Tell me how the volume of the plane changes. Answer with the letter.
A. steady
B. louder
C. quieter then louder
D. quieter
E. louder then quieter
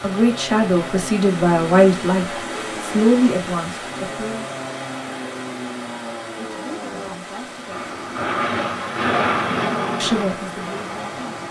B.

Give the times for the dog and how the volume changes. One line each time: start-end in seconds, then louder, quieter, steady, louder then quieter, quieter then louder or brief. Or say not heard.
not heard.